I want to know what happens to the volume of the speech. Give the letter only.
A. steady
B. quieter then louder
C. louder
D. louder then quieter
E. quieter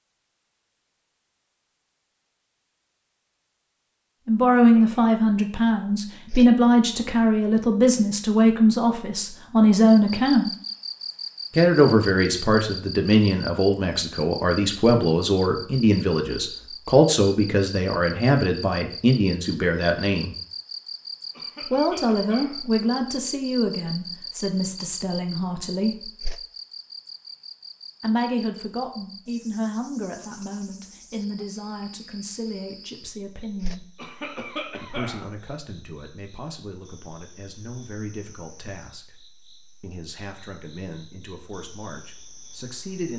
E.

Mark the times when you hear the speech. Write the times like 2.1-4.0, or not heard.
4.2-10.5, 11.5-20.3, 21.6-26.1, 28.0-33.9, 34.8-39.2, 39.8-43.1.